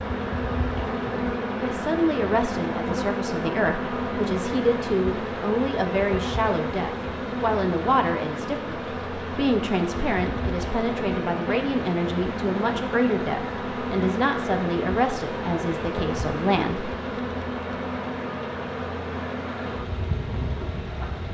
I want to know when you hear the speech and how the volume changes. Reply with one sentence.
The speech can be heard from 1.6 to 16.9 s, at a steady volume.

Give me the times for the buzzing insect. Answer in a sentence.
The buzzing insect can be heard from 0.0 to 21.2 s.